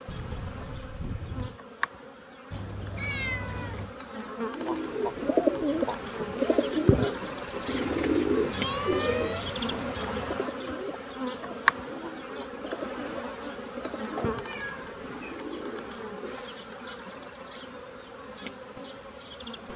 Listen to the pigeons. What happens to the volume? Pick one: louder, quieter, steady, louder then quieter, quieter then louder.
quieter.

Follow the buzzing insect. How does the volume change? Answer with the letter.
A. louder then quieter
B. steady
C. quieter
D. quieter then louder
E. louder
A.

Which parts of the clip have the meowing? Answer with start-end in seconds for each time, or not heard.
2.5-4.0, 7.7-10.4, 14.2-15.2.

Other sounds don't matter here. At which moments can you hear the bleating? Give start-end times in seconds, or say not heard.
0.1-1.6.